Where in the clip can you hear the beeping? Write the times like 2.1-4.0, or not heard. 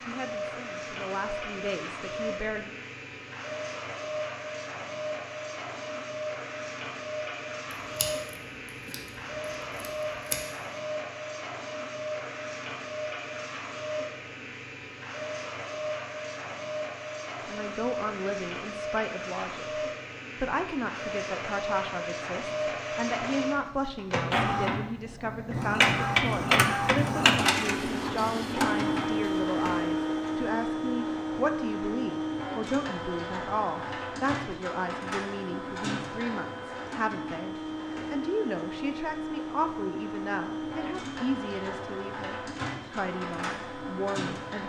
not heard.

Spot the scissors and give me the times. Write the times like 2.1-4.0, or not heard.
7.8-10.4.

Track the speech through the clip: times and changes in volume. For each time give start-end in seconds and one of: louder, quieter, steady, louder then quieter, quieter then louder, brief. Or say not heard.
0.1-2.7 brief
17.4-44.6 steady.